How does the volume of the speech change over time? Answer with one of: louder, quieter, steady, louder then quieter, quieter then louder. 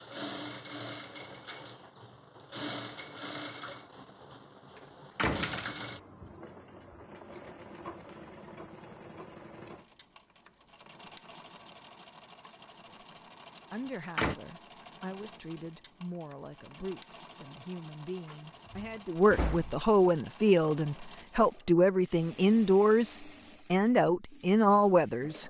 louder.